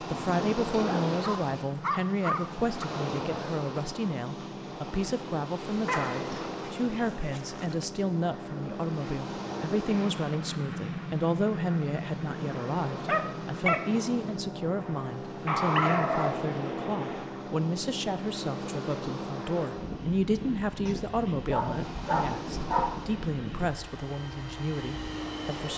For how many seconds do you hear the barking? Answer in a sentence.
You can hear the barking for 9 seconds altogether.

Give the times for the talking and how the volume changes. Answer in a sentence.
You can hear the talking from 0.0 to 25.7 s, at a steady volume.